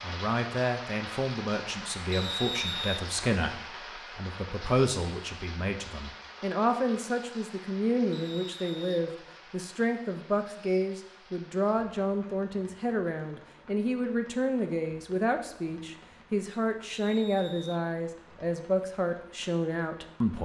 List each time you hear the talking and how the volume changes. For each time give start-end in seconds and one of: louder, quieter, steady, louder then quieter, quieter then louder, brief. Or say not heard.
0.0-20.4 steady.